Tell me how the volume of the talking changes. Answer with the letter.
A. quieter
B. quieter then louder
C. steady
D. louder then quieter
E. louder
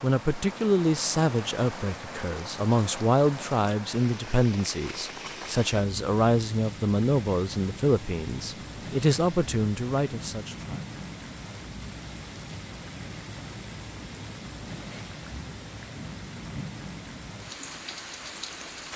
C.